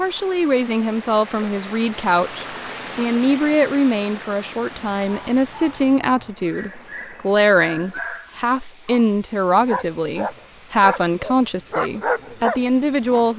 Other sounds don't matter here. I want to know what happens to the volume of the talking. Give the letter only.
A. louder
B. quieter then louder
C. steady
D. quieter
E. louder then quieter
C.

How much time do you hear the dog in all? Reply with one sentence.
You can hear the dog for 9 seconds altogether.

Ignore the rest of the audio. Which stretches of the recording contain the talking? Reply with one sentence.
The talking can be heard from 0.0 to 13.3 s.